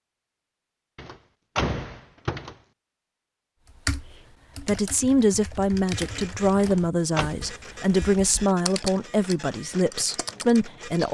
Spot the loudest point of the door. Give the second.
2 s.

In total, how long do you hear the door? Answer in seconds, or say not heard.
2 s.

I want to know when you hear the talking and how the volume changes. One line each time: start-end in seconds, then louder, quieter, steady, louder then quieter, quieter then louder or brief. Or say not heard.
4.6-11.0 steady.